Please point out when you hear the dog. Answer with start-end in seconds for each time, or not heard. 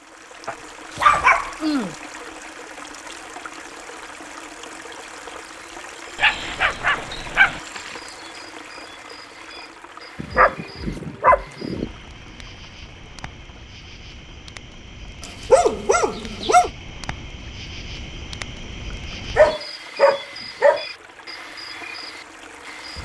0.5-1.9, 6.2-7.6, 10.2-11.9, 15.2-16.7, 19.4-20.9.